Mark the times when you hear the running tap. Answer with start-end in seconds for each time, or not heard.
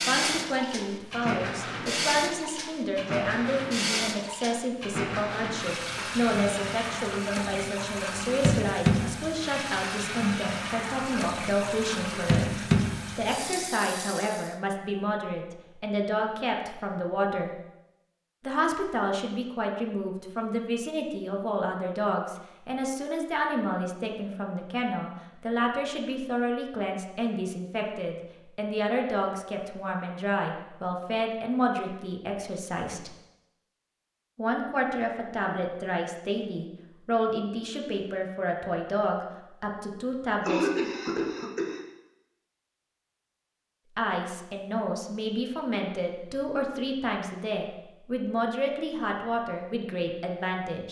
0.0-14.6.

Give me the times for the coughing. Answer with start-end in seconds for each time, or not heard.
40.5-41.8.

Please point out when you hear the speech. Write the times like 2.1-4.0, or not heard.
0.0-17.5, 18.4-33.1, 34.4-40.7, 44.0-50.8.